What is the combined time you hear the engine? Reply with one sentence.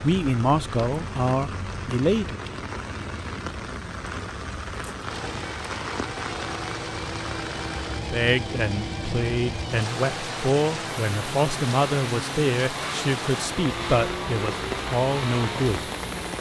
The engine can be heard for 11 seconds in total.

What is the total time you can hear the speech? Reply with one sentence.
You can hear the speech for 10 seconds altogether.